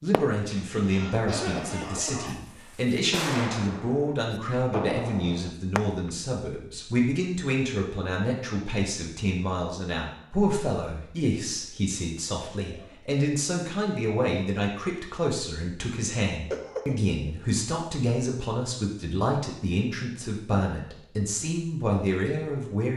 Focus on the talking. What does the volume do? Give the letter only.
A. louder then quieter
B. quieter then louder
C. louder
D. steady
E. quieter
D.